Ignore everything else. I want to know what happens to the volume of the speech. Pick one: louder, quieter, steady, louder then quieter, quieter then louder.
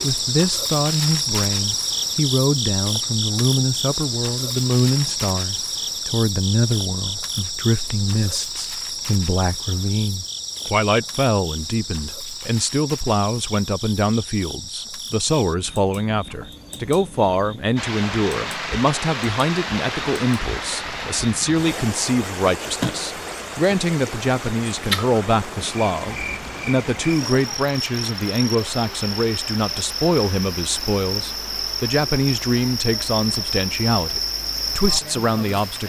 steady.